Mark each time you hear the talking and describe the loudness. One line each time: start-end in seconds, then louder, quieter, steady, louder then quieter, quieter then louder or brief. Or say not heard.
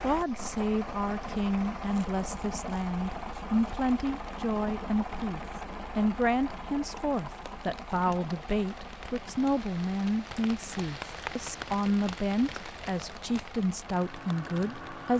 0.0-15.1 steady.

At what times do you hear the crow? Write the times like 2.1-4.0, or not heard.
not heard.